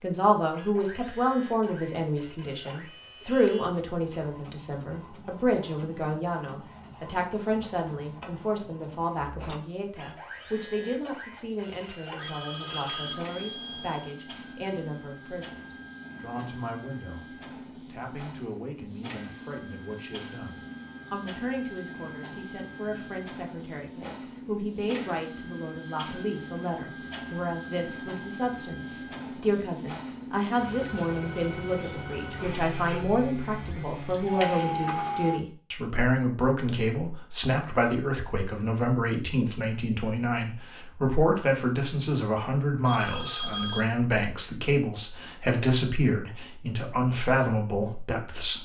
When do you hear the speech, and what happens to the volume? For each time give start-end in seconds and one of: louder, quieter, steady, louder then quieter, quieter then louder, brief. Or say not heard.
0.0-48.5 quieter then louder.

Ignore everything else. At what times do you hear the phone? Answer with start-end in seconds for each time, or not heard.
12.2-14.2, 42.9-44.0.